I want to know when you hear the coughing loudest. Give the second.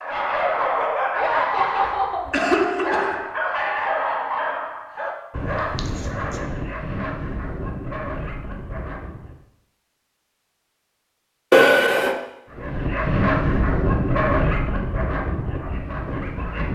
12 s.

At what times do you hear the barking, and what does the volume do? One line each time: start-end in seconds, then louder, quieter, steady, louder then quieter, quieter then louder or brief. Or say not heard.
0.0-9.3 quieter
12.5-16.6 quieter.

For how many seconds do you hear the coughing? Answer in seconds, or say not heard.
3 s.